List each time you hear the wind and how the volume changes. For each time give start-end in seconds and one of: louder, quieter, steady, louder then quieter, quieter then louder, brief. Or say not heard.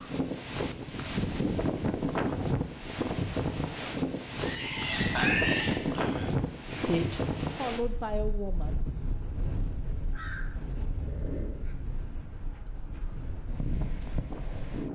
0.0-14.8 quieter.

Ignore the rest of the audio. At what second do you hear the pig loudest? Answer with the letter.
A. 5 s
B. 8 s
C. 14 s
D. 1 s
A.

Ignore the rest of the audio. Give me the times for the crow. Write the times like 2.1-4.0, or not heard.
10.1-11.8.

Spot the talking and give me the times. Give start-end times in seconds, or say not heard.
6.8-8.8.